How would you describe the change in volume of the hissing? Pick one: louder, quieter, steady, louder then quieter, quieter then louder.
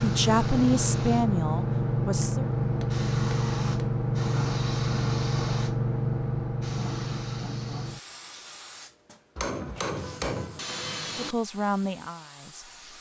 quieter.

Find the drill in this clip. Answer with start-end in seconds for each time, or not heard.
not heard.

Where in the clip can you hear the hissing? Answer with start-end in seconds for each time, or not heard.
0.0-12.9.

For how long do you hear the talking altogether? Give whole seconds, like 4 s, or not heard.
4 s.